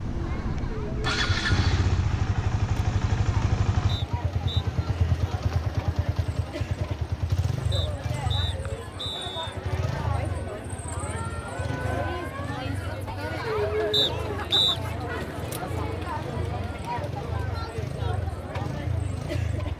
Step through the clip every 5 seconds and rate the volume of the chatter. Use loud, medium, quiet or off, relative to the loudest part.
medium, medium, loud, loud.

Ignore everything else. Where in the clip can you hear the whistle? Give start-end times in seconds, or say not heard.
3.9-4.7, 7.7-9.6, 13.9-14.8.